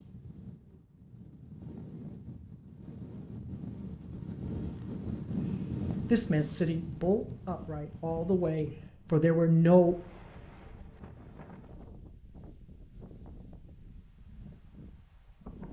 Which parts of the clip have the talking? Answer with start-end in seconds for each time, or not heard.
6.1-9.9.